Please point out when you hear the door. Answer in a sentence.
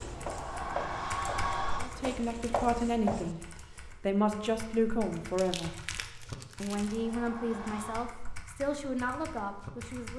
The door can be heard from 0.0 to 1.9 s and from 6.7 to 8.1 s.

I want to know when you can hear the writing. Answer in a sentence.
You can hear the writing from 0.0 to 3.4 s.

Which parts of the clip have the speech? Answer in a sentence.
You can hear the speech from 1.8 to 3.4 s, from 4.0 to 5.8 s and from 6.6 to 10.1 s.